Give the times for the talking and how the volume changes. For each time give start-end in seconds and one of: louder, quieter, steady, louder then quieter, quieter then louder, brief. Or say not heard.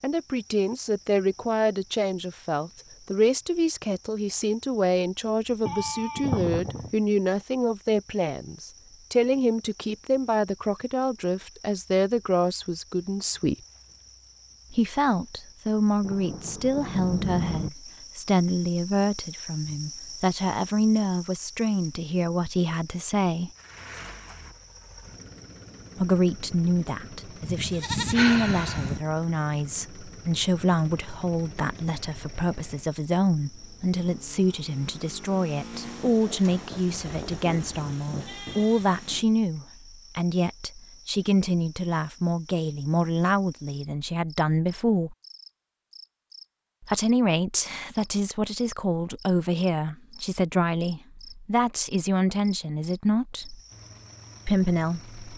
0.0-13.6 steady
14.7-23.5 steady
25.9-45.1 steady
46.9-53.6 steady
54.5-55.1 brief.